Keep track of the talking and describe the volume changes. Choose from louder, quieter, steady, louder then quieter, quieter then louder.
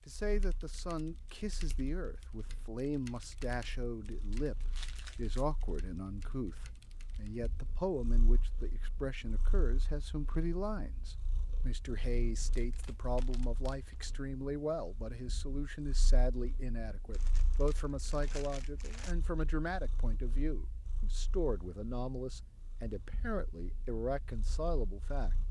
steady.